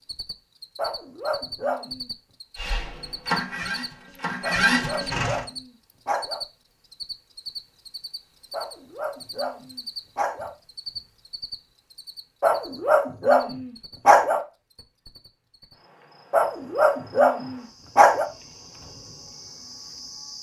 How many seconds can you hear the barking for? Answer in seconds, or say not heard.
9 s.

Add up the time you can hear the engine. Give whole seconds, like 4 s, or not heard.
3 s.